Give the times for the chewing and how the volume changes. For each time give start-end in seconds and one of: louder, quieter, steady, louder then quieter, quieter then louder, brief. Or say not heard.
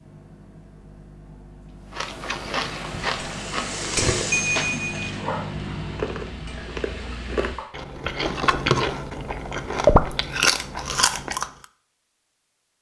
1.9-11.5 louder.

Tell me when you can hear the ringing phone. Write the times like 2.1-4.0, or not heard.
4.3-5.1.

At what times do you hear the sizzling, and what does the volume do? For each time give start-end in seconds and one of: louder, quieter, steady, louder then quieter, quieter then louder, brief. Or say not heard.
2.6-7.7 louder then quieter.